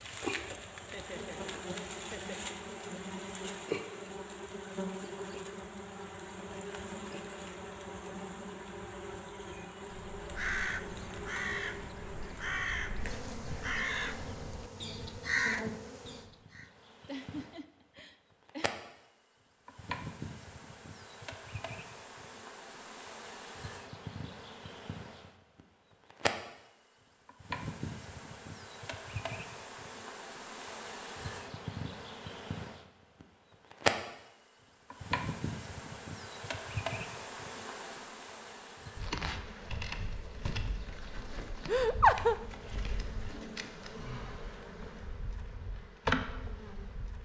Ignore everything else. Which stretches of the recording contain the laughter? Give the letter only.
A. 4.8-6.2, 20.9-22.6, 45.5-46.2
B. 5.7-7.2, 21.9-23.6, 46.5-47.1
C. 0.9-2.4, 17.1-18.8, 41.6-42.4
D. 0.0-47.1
C.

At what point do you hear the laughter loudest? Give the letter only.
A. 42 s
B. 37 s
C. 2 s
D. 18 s
A.